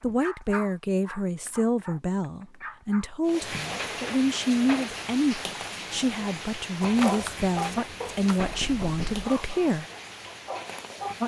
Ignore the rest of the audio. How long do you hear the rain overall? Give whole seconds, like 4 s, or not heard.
8 s.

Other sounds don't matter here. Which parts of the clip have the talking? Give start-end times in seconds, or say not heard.
0.0-9.8.